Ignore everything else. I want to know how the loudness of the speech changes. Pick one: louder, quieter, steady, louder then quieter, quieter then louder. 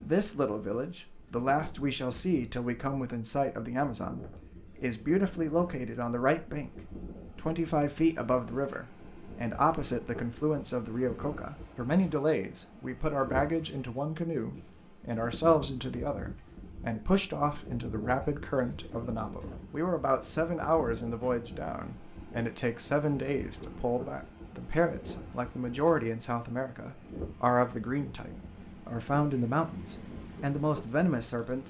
steady.